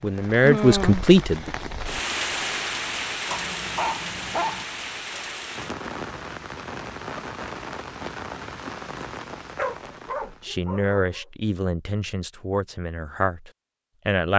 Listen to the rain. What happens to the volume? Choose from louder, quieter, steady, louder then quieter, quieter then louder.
quieter.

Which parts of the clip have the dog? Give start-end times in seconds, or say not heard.
3.3-4.7, 9.6-11.2.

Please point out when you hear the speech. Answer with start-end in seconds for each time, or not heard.
0.0-1.6, 10.4-14.3.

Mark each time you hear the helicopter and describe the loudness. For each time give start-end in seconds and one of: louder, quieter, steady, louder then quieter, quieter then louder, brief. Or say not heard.
not heard.